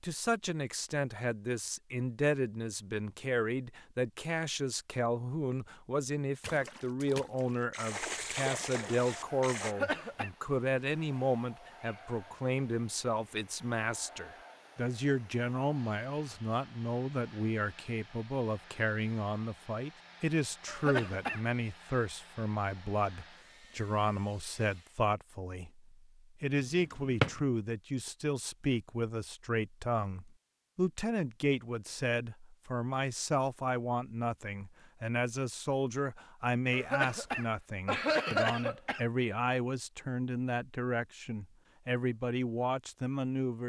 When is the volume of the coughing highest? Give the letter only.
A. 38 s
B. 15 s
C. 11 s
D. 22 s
A.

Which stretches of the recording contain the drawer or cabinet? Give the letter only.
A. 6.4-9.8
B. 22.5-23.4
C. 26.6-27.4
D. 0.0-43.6
C.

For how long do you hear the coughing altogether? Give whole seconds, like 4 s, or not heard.
4 s.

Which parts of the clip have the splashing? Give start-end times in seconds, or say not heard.
6.4-9.8.